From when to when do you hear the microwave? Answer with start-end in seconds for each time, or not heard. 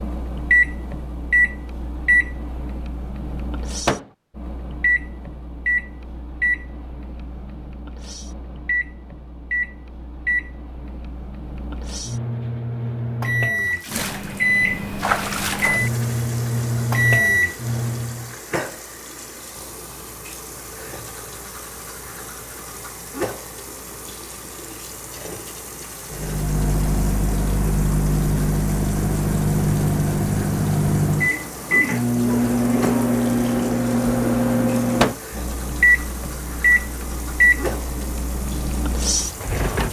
0.0-18.3, 26.1-39.8.